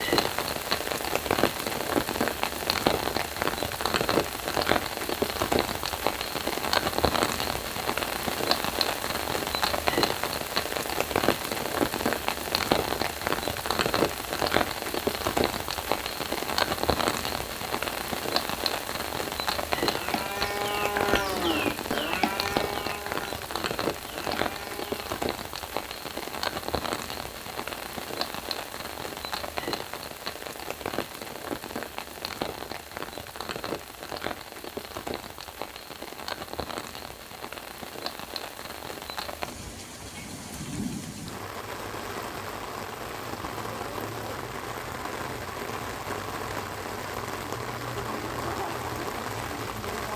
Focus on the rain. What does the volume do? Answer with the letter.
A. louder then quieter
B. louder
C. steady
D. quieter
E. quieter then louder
D.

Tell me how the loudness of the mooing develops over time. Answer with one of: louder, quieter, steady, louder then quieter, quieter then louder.
quieter.